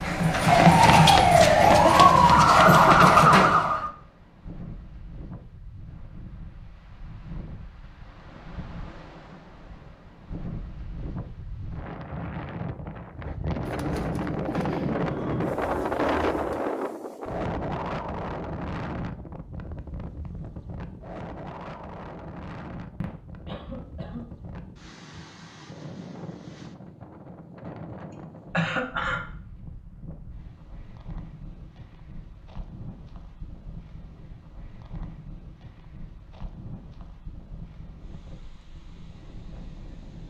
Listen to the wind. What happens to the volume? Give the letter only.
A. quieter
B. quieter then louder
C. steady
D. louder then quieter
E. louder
D.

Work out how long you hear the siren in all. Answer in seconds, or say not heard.
4 s.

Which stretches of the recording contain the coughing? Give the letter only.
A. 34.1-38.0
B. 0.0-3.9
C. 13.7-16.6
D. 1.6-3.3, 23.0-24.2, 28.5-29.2
D.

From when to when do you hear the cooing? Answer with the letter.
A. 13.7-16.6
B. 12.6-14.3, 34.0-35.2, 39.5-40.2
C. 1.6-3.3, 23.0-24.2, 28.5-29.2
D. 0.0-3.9
A.